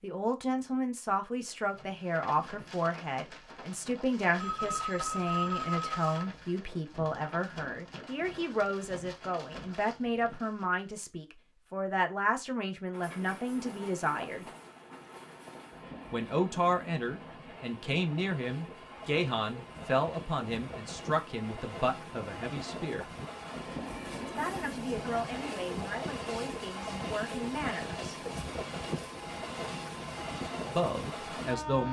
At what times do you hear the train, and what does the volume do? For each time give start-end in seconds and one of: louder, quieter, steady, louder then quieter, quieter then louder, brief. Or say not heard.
12.9-31.8 louder.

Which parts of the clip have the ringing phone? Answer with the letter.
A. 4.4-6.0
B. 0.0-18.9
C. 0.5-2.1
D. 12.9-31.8
A.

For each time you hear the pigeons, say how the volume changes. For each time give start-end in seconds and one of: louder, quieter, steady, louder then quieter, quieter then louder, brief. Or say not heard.
not heard.